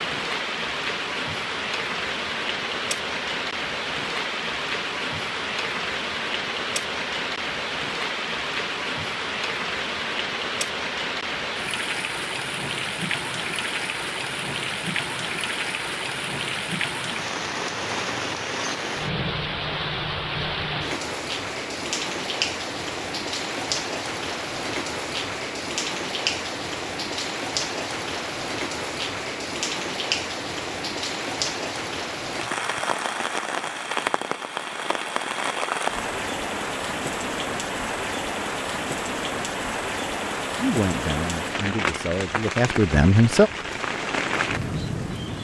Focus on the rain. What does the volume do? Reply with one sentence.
The volume of the rain stays about the same.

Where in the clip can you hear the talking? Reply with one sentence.
The talking can be heard from 40.6 to 43.5 s.